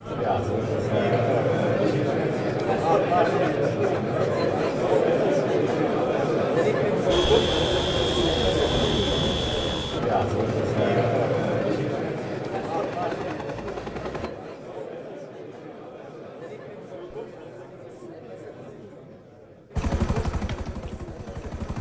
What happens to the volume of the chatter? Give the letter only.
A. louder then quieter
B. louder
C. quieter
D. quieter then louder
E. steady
C.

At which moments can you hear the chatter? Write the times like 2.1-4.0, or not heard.
0.0-21.7.